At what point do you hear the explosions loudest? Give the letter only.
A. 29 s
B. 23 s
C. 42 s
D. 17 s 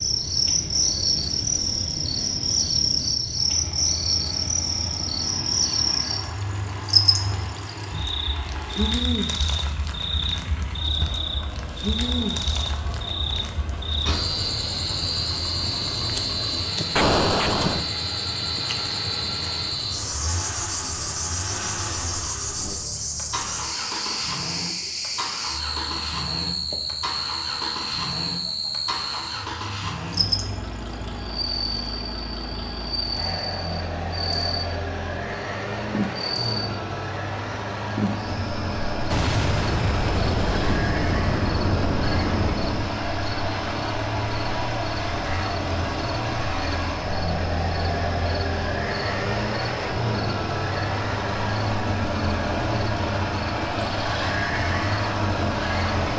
D.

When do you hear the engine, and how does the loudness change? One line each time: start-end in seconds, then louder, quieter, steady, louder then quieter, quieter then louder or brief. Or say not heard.
0.0-56.1 louder.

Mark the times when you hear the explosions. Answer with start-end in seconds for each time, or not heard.
16.9-17.9, 39.1-43.0.